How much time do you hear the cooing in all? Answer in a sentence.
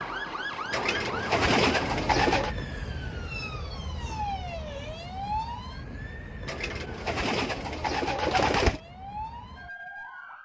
The cooing can be heard for 4 seconds in total.